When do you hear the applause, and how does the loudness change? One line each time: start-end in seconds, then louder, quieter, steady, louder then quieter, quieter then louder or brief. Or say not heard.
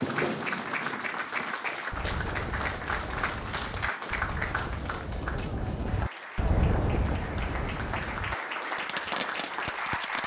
0.0-10.2 quieter then louder.